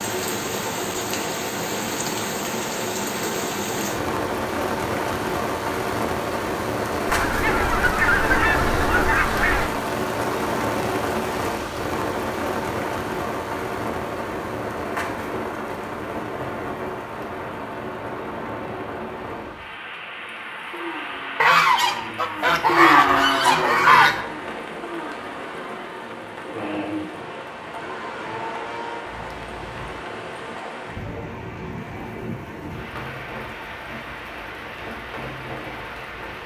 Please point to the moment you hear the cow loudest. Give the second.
23 s.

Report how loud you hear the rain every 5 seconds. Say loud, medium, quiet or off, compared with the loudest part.
loud, loud, loud, medium, medium, medium, medium, medium.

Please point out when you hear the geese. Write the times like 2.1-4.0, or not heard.
7.0-9.7, 21.4-24.2.